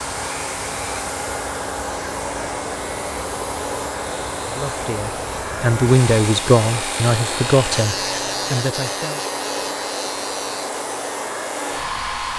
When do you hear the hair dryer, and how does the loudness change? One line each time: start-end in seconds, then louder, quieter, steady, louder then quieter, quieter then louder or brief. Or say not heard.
0.0-12.3 steady.